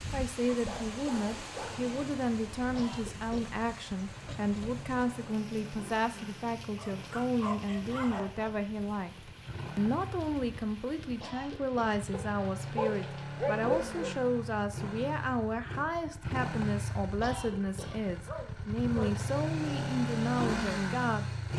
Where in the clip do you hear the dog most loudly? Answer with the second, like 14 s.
14 s.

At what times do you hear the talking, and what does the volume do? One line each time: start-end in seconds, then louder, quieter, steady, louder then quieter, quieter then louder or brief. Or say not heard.
0.1-21.3 steady.